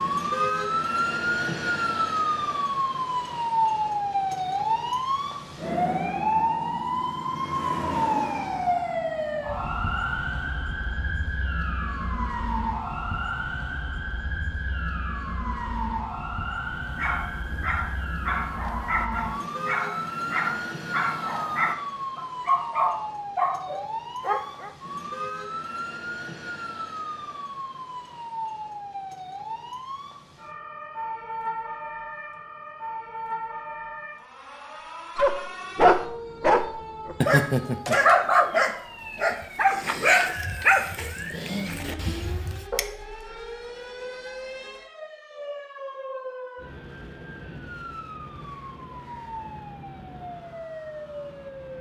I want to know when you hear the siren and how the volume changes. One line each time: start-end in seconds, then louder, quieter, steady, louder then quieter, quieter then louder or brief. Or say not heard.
0.0-51.7 quieter.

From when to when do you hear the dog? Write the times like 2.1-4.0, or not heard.
16.6-24.7, 35.1-42.9.